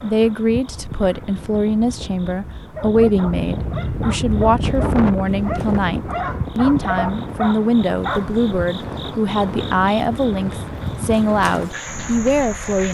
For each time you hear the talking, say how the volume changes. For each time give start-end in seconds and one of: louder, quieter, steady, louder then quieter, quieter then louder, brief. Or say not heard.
0.0-12.8 steady.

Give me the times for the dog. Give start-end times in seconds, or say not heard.
2.8-8.3.